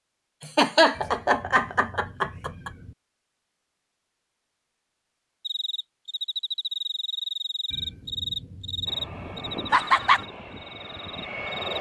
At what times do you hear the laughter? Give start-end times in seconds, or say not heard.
0.4-2.7, 9.7-10.2.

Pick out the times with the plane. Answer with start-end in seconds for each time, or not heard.
8.8-11.7.